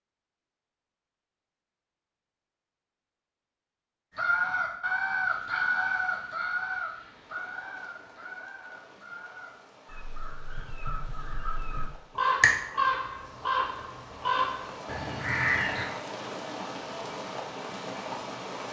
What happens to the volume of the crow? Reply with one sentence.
The volume of the crow goes down, then up.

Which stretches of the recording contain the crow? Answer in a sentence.
The crow can be heard from 4.2 to 15.8 s.